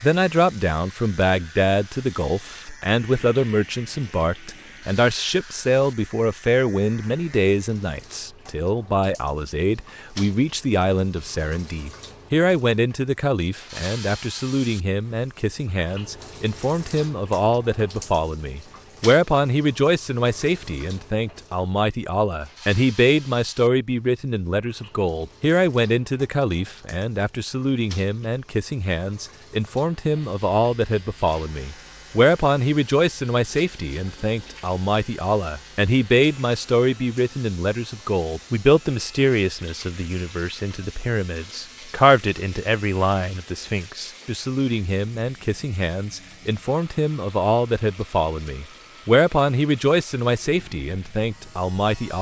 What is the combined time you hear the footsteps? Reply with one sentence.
The footsteps can't be heard in this clip.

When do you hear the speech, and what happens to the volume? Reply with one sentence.
The speech can be heard from 0.0 to 52.1 s, at a steady volume.